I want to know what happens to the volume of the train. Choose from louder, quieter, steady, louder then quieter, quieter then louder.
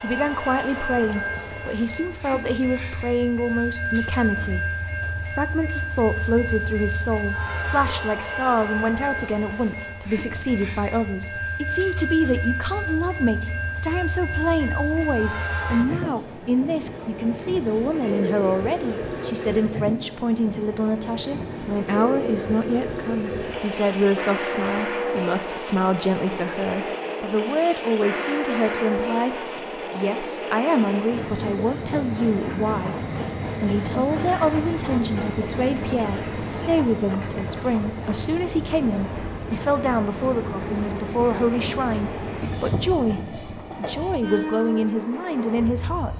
steady.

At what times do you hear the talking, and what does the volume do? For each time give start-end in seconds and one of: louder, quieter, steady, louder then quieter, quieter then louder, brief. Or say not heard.
0.0-33.0 steady
33.6-46.1 steady.